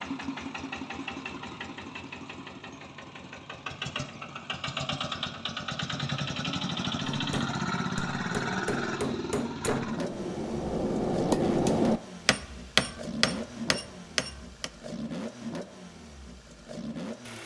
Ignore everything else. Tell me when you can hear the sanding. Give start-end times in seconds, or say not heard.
not heard.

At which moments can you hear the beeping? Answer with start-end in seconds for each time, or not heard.
not heard.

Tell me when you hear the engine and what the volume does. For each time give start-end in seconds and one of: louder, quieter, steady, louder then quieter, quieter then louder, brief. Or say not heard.
0.0-17.4 louder then quieter.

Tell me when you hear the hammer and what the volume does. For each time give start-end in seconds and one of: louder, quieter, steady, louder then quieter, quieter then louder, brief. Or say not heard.
7.0-14.7 louder then quieter.